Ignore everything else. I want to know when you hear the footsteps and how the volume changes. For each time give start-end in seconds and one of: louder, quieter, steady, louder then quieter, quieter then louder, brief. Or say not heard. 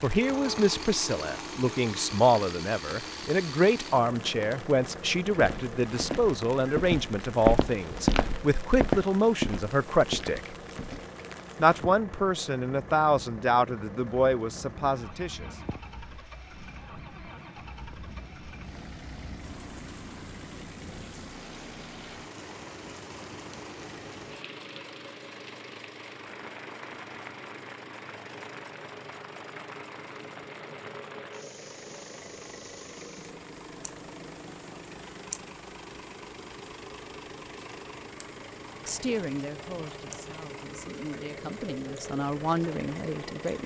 5.3-11.0 louder then quieter.